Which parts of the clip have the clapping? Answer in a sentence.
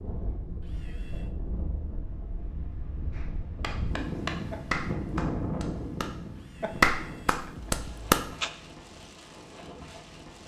The clapping can be heard from 3.1 to 8.5 s.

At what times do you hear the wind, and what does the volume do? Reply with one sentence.
The wind can be heard from 0.0 to 10.4 s, getting louder then quieter.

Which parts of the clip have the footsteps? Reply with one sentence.
You can't hear the footsteps here.